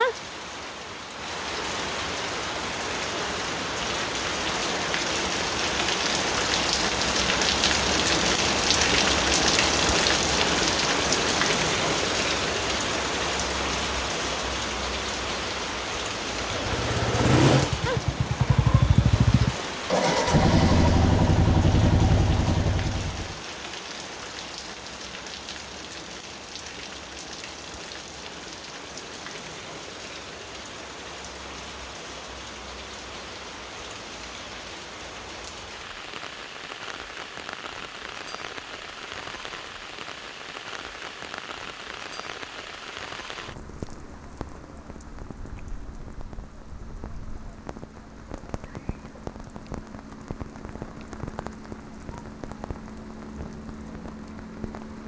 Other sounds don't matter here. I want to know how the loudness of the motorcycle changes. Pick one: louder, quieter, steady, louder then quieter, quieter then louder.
steady.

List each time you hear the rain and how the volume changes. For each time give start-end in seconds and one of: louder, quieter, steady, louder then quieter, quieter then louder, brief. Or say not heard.
0.0-55.0 quieter.